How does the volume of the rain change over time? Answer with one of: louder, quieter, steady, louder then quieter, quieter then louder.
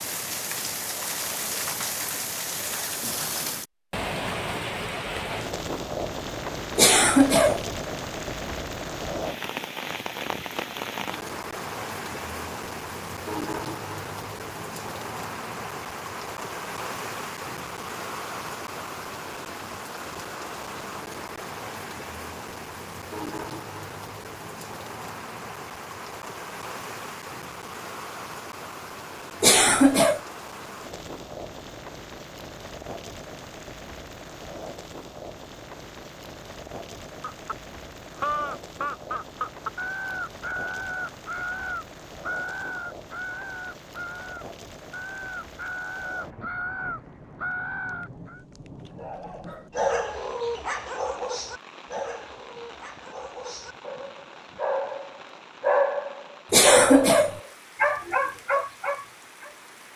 quieter.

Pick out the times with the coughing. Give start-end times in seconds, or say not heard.
6.8-7.7, 29.4-30.2, 56.5-57.4.